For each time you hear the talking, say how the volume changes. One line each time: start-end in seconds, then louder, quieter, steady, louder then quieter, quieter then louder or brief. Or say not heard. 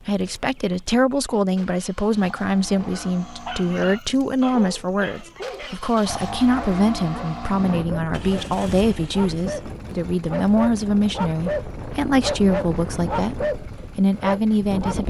0.1-15.0 steady.